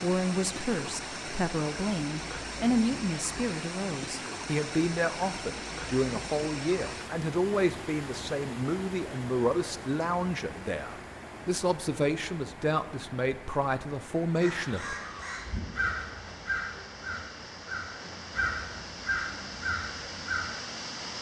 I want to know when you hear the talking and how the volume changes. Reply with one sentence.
You can hear the talking from 0.0 to 14.9 s, at a steady volume.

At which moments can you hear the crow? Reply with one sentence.
You can hear the crow from 14.3 to 20.6 s.